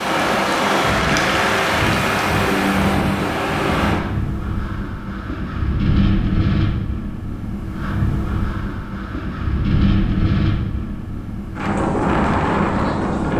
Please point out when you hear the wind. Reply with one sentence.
The wind can be heard from 0.0 to 13.3 s.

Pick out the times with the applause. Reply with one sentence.
The applause can be heard from 0.0 to 2.6 s.